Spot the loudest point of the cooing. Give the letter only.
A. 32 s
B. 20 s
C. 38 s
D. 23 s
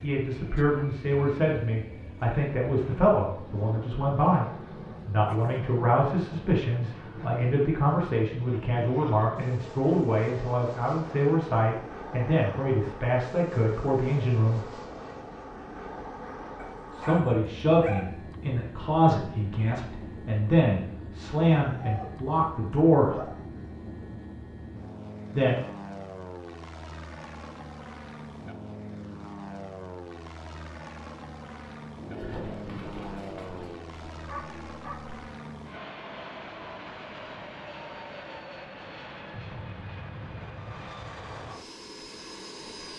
A.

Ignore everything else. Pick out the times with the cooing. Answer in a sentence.
The cooing can be heard from 31.9 to 34.8 s.